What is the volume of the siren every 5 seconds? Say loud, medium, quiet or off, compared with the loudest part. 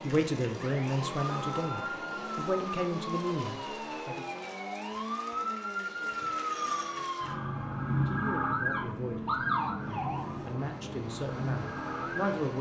medium, loud, medium.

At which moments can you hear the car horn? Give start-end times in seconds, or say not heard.
1.2-1.9.